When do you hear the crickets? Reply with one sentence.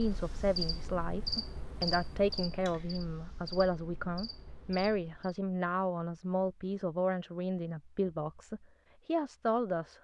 You can hear the crickets from 0.0 to 5.4 s.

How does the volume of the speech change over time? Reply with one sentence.
The loudness of the speech stays about the same.